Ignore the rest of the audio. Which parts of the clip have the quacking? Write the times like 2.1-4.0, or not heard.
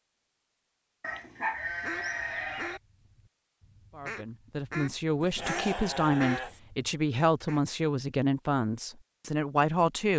1.7-7.6.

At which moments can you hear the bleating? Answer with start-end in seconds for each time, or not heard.
1.0-2.8, 5.2-6.6.